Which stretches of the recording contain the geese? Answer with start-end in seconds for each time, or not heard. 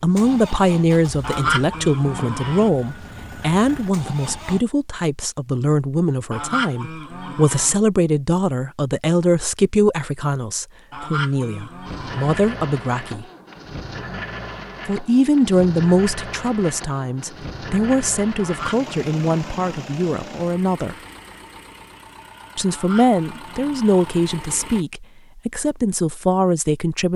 1.2-2.7, 6.3-7.8, 10.9-12.4, 18.4-19.9, 22.6-24.1.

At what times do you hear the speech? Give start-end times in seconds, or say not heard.
0.0-13.2, 14.8-20.9, 22.6-27.1.